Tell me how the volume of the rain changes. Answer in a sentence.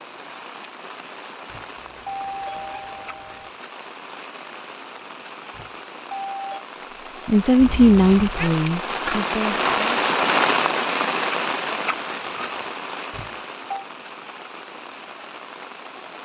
The loudness of the rain goes up, then down.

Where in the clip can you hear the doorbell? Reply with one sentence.
You can hear the doorbell from 1.5 to 3.5 s, from 5.5 to 6.7 s and from 13.1 to 13.8 s.